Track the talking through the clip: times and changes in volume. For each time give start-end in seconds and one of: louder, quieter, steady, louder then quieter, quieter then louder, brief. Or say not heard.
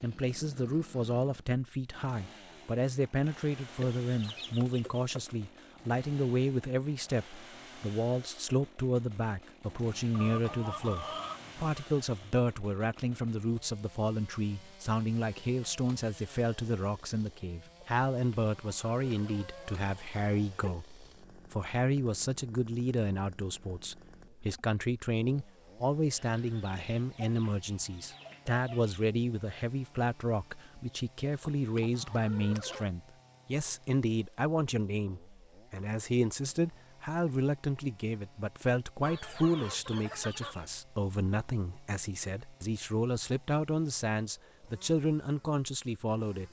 0.0-46.4 steady.